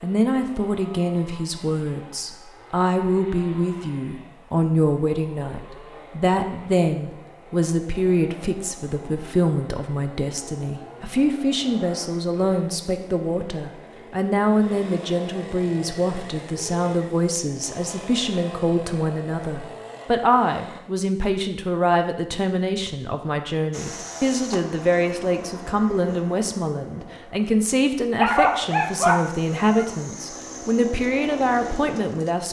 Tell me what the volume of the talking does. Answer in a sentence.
The loudness of the talking stays about the same.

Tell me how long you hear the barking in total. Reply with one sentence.
You can hear the barking for 2 seconds altogether.